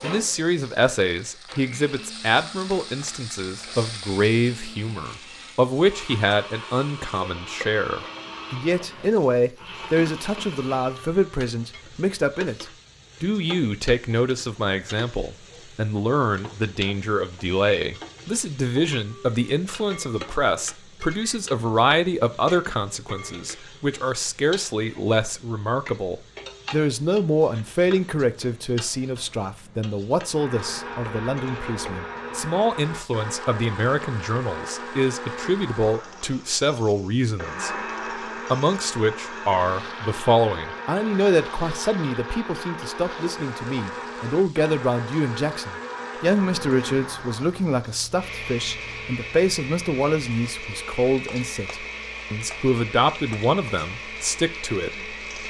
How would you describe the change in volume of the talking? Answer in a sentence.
The volume of the talking stays about the same.